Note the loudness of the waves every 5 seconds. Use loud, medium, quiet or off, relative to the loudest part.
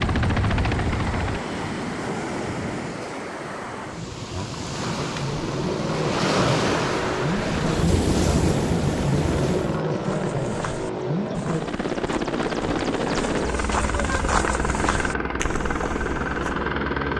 medium, loud, off, off.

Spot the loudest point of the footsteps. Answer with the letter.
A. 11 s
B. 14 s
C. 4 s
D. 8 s
B.